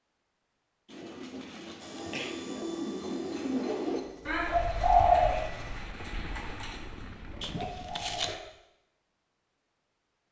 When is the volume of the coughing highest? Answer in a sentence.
The loudest moment of the coughing is at 8 seconds.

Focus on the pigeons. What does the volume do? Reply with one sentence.
The volume of the pigeons goes up, then down.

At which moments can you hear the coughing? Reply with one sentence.
You can hear the coughing from 0.8 to 2.4 s and from 7.4 to 8.3 s.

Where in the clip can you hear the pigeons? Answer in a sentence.
You can hear the pigeons from 0.8 to 8.4 s.